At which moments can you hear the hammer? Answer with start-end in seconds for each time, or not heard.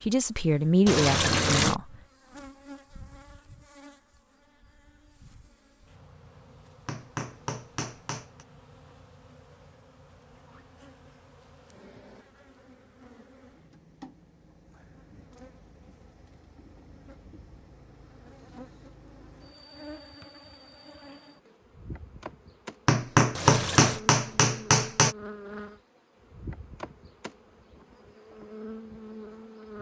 6.8-8.4, 22.9-25.1.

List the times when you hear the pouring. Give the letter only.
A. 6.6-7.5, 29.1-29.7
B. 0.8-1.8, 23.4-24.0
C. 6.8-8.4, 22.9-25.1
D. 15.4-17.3
B.